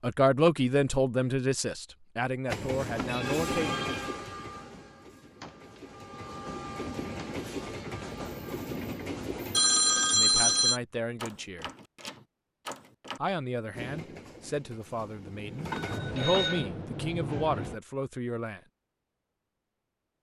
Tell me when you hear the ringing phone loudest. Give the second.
10 s.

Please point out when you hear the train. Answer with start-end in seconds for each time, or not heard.
2.5-9.6, 13.7-17.8.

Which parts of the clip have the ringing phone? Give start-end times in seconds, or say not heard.
2.5-4.2, 9.5-10.8, 15.7-16.6.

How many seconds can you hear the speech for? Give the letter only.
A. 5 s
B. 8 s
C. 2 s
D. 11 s
D.